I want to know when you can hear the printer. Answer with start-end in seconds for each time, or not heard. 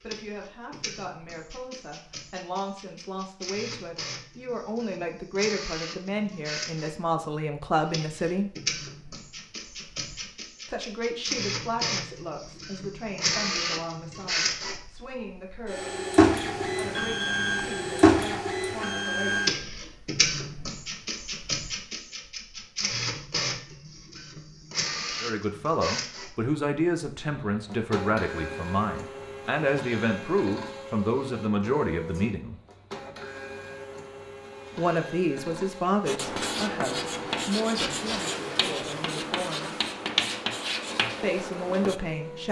0.0-42.4.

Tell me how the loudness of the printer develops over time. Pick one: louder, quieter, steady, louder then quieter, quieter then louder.
louder then quieter.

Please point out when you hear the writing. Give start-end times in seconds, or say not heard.
36.0-42.0.